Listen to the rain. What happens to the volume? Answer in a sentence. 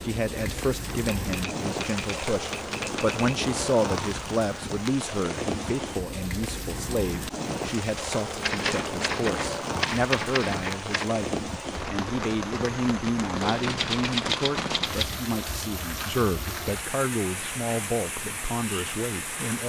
The loudness of the rain stays about the same.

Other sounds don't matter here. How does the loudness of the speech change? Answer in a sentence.
The loudness of the speech stays about the same.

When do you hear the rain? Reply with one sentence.
The rain can be heard from 0.0 to 19.6 s.